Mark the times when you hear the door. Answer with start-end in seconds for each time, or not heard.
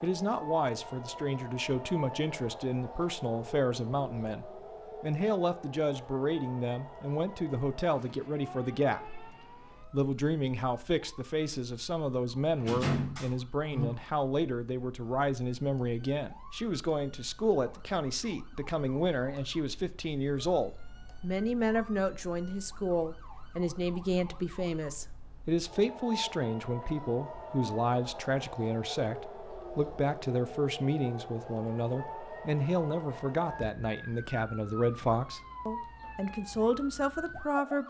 12.6-13.8.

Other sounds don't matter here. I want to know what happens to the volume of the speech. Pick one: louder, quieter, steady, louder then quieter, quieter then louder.
steady.